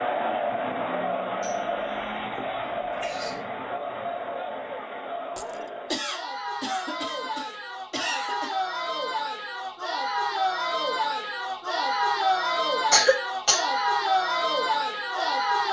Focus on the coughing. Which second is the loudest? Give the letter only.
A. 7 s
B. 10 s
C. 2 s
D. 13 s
D.